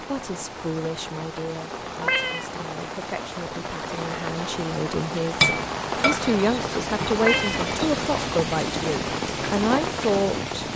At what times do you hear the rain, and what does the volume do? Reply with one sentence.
The rain can be heard from 0.0 to 10.7 s, getting louder.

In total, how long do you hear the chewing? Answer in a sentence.
You can't hear the chewing here.